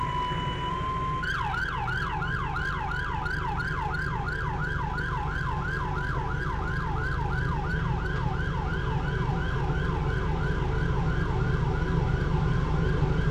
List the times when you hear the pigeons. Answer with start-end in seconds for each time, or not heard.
not heard.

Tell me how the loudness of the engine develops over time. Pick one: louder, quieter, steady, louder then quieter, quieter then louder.
louder.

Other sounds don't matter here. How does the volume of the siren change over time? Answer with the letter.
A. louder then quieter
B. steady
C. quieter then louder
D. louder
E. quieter
E.